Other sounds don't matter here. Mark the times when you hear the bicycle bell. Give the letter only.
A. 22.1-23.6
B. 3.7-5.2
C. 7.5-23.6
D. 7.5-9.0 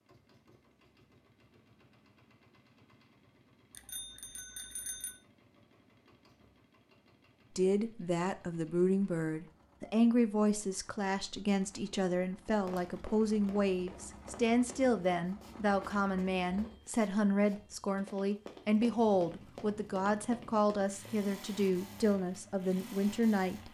B.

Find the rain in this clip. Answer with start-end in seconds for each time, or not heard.
not heard.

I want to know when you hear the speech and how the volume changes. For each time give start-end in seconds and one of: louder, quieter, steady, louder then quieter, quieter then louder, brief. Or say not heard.
7.5-23.6 steady.